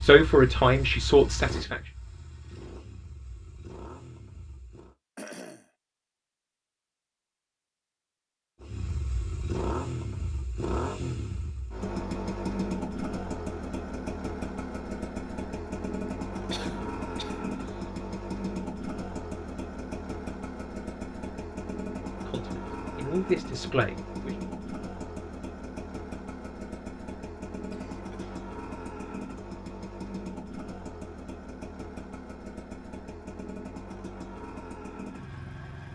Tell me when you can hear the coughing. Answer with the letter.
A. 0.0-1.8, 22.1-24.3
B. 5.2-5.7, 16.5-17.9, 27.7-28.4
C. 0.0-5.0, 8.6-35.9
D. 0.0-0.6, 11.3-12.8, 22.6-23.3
B.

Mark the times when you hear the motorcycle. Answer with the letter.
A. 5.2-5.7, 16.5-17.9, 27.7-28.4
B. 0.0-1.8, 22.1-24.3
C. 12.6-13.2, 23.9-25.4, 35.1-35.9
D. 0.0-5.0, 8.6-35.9
D.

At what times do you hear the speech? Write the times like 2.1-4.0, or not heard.
0.0-1.8, 22.1-24.3.